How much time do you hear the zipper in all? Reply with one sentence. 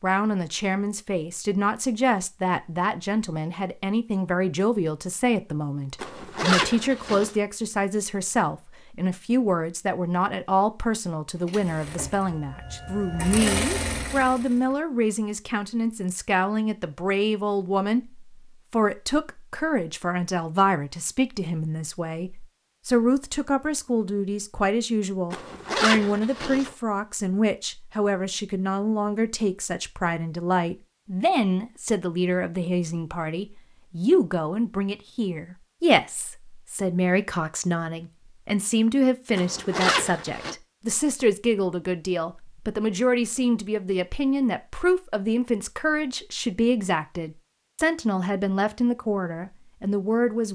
You can hear the zipper for 4 seconds altogether.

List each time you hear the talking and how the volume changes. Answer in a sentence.
You can hear the talking from 0.0 to 50.5 s, at a steady volume.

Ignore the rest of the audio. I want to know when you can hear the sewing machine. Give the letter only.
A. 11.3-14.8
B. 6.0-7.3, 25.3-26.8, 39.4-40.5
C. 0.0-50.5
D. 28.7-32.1
A.